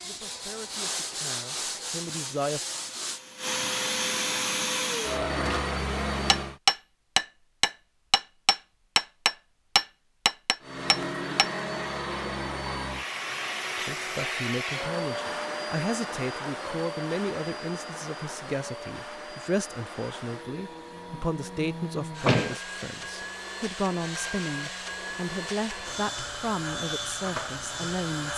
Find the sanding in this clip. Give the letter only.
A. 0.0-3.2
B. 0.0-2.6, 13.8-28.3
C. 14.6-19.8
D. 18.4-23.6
A.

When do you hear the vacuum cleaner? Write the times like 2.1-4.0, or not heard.
0.0-6.6, 10.6-28.3.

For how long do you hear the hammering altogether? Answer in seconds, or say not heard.
5 s.